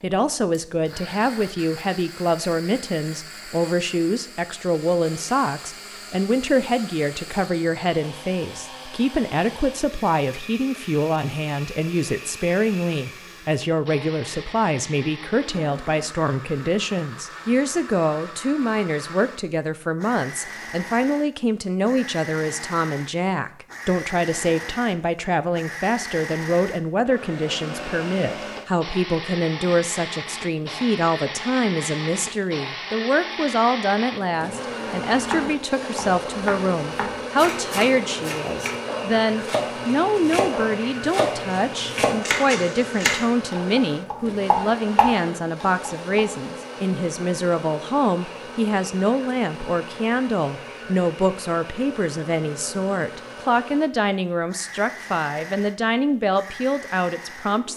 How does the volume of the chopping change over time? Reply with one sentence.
The loudness of the chopping goes up.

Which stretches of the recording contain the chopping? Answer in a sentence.
The chopping can be heard from 35.1 to 46.2 s.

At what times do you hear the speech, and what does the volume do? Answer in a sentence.
You can hear the speech from 0.0 to 57.7 s, at a steady volume.